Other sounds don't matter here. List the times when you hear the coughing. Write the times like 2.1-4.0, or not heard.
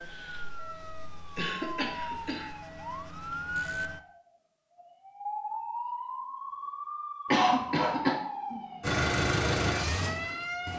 1.4-2.5, 7.3-8.2.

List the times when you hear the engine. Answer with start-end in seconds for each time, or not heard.
8.8-10.7.